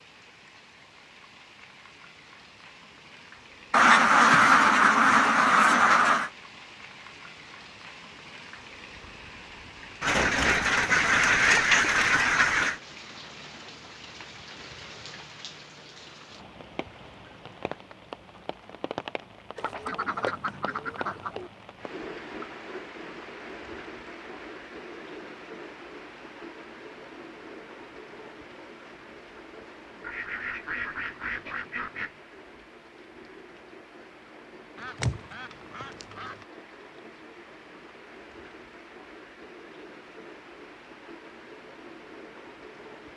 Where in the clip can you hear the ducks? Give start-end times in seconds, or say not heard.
3.7-6.3, 10.0-12.8, 19.6-21.5, 30.0-32.1, 34.8-36.5.